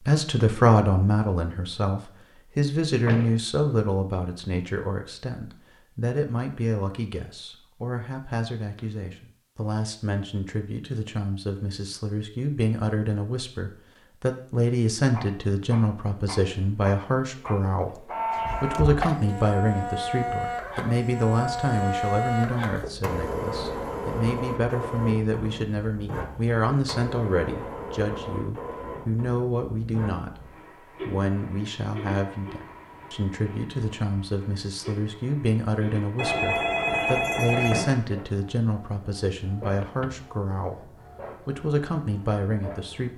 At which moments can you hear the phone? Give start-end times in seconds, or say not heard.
36.1-38.0.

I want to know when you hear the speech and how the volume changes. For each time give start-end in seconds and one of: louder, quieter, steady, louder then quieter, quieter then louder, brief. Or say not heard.
0.1-43.1 steady.